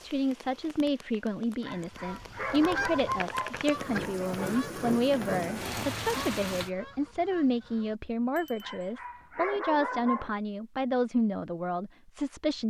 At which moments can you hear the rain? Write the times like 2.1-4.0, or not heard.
0.0-6.7.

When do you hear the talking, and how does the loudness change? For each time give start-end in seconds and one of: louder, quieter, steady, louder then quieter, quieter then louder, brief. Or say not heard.
0.0-12.6 steady.